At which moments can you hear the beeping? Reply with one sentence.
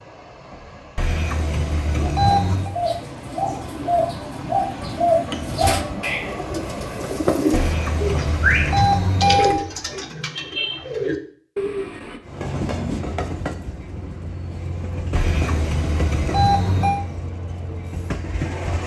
The beeping can be heard from 0.9 to 2.7 s, from 7.5 to 9.7 s and from 15.2 to 17.1 s.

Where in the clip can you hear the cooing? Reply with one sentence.
You can hear the cooing from 2.5 to 12.2 s.